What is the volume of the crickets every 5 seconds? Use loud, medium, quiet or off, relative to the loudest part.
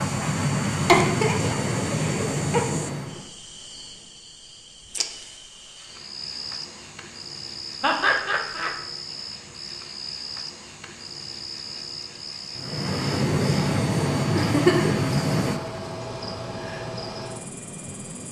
medium, loud, loud, loud.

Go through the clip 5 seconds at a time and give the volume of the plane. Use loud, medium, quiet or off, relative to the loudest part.
loud, off, loud, medium.